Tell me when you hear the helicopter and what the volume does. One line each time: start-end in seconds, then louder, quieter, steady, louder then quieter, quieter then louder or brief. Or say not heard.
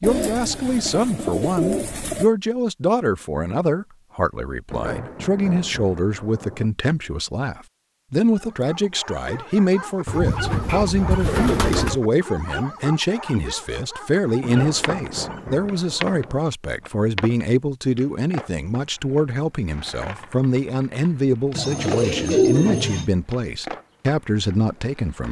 not heard.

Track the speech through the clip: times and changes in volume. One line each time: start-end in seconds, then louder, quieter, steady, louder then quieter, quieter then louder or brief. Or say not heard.
0.0-25.2 steady.